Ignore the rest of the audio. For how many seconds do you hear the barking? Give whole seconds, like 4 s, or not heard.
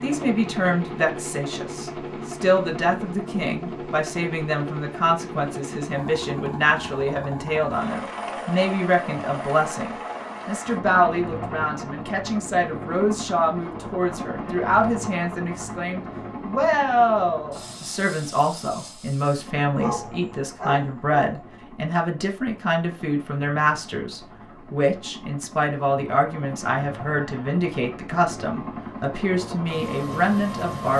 2 s.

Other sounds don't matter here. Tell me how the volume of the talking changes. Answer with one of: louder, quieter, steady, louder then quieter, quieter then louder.
steady.